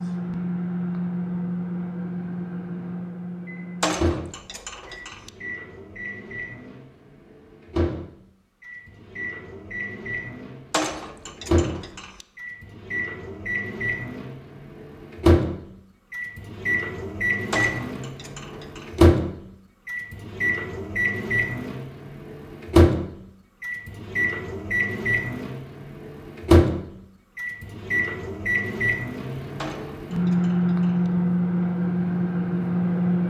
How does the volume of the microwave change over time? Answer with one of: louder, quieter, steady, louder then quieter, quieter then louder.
louder.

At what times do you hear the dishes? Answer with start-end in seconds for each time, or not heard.
3.8-5.3, 10.7-12.2, 17.5-19.0, 29.6-31.1.